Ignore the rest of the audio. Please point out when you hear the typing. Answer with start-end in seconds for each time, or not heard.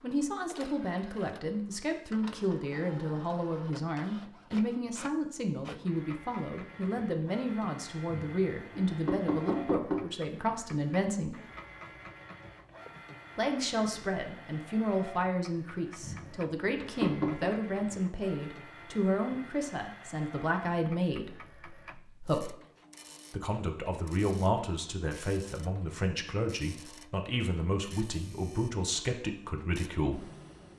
not heard.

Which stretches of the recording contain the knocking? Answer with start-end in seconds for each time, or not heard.
8.1-10.1, 16.0-17.5.